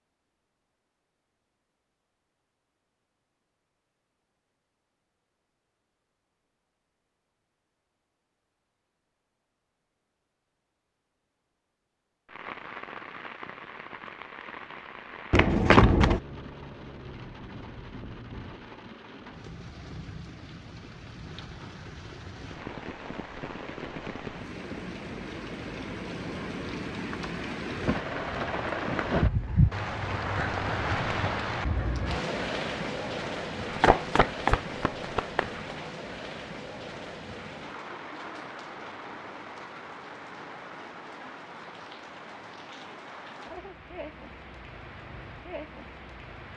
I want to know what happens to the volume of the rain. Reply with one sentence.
The volume of the rain goes up, then down.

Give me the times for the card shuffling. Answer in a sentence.
The card shuffling can be heard from 15.3 to 16.2 s and from 33.7 to 35.6 s.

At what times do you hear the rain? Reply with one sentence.
The rain can be heard from 12.2 to 46.5 s.